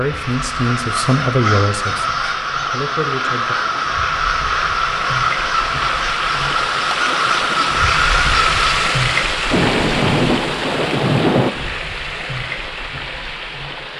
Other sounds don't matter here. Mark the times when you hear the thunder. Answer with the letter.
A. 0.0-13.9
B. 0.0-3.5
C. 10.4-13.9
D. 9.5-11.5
D.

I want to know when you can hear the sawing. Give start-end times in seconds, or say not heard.
not heard.